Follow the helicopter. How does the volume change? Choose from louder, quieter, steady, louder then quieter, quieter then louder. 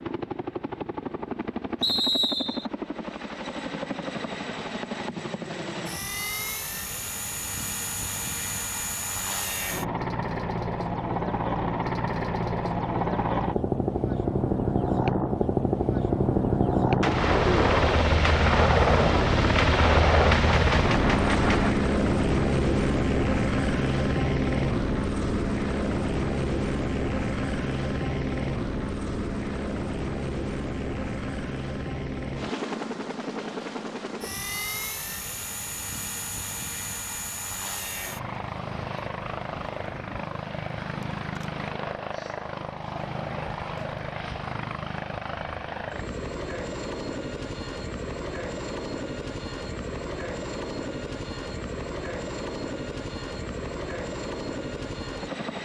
louder then quieter.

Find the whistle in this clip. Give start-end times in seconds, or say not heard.
1.8-2.7.